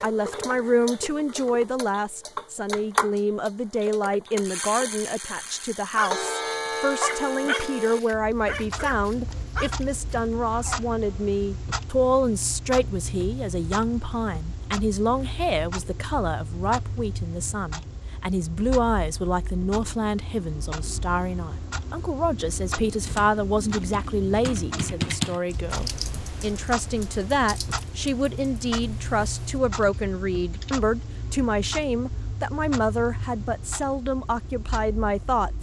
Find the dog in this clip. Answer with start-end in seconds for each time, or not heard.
5.2-10.9.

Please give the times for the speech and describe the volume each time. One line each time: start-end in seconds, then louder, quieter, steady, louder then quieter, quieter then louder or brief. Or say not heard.
0.0-35.5 steady.